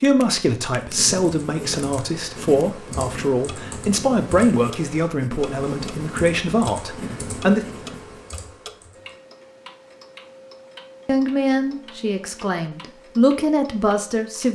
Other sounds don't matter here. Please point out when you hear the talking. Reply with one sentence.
The talking can be heard from 0.0 to 7.7 s and from 11.1 to 14.4 s.